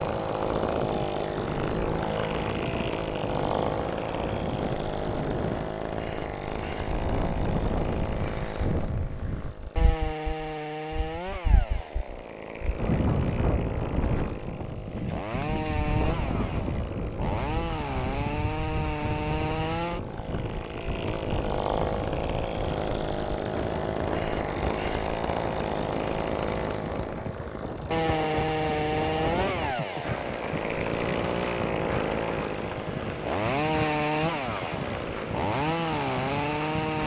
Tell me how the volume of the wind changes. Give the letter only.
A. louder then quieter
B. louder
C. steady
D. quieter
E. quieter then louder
C.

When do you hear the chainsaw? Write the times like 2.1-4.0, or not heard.
0.0-37.0.